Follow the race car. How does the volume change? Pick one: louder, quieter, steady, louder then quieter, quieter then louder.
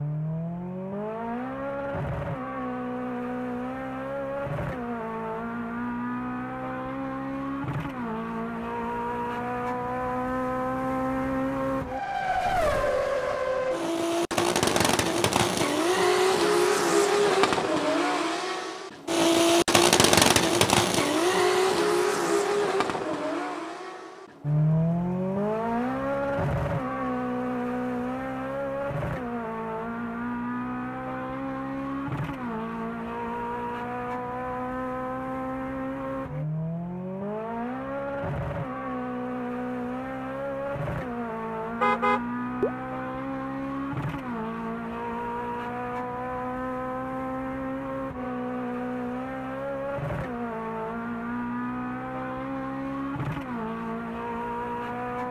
louder then quieter.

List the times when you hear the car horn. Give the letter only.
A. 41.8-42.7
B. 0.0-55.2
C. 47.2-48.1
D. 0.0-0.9
A.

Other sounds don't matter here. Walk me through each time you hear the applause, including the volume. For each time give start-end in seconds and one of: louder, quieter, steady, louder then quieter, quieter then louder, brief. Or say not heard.
not heard.